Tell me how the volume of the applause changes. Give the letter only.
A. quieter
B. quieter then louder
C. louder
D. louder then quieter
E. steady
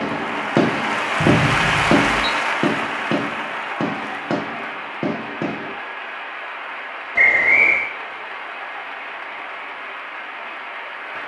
A.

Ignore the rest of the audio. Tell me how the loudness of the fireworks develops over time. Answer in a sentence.
The volume of the fireworks goes down.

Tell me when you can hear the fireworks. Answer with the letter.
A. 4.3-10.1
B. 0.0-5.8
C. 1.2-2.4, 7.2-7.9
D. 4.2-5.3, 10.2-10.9
B.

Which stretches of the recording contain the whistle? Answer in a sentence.
The whistle can be heard from 1.2 to 2.4 s and from 7.2 to 7.9 s.